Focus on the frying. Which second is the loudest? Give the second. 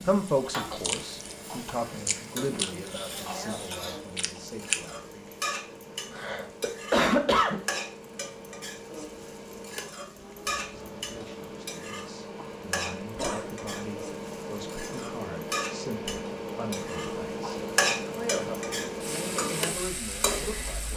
18 s.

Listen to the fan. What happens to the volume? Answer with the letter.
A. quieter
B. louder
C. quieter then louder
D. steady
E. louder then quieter
B.